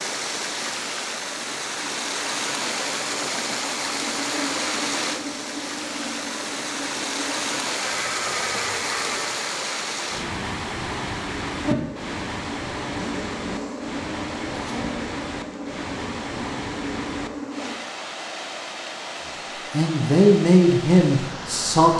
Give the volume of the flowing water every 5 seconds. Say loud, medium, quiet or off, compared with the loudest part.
loud, loud, loud, medium, medium.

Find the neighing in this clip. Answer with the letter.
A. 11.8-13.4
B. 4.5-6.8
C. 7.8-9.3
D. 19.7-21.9
C.